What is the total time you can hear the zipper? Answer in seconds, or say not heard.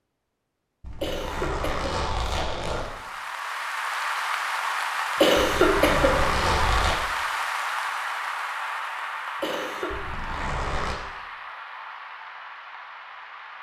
5 s.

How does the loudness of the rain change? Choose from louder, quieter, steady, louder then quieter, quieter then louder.
quieter.